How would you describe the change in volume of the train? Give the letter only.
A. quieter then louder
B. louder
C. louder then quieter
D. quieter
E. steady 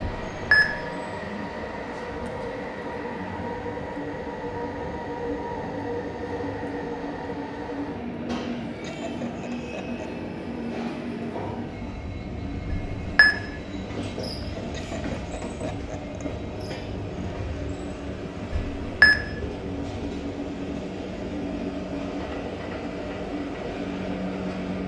E.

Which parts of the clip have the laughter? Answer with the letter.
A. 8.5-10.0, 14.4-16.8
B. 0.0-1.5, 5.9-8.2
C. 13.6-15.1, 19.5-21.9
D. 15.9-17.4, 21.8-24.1
A.